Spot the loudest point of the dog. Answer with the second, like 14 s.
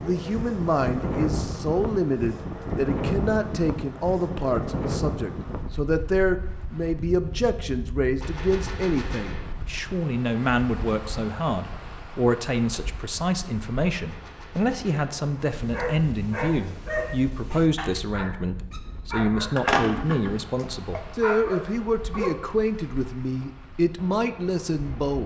20 s.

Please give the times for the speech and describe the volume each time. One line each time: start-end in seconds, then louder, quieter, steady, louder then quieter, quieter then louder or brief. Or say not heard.
0.0-25.2 steady.